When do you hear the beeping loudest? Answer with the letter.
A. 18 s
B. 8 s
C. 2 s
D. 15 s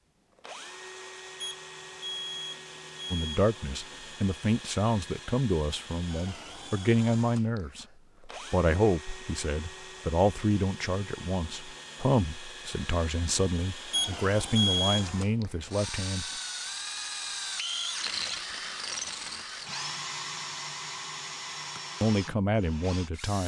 D.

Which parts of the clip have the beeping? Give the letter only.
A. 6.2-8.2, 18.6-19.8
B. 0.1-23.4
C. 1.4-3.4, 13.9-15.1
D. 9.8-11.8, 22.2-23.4
C.